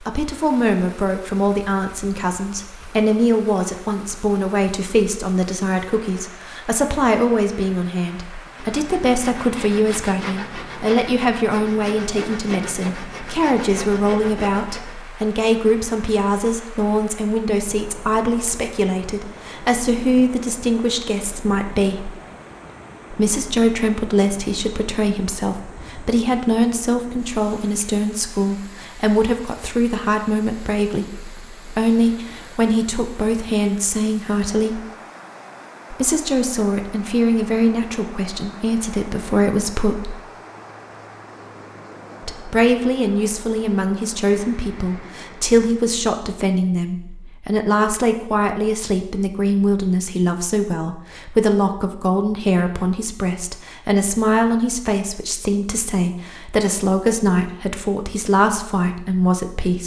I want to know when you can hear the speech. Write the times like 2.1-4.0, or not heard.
0.0-22.1, 23.1-34.8, 35.9-40.1, 42.2-59.8.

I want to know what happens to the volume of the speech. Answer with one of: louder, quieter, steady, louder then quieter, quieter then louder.
steady.